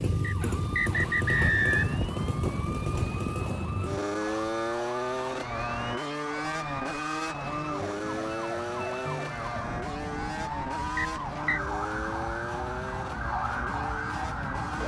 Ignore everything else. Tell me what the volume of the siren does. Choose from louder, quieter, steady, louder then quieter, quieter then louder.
louder.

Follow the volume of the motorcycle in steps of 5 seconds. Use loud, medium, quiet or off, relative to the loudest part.
loud, loud, medium.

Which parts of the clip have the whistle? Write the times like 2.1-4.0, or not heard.
0.2-2.0, 10.9-11.6.